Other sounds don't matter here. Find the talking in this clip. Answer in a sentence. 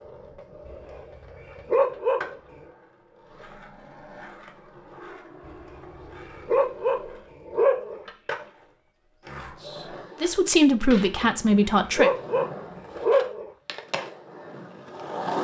You can hear the talking from 9.3 to 12.1 s.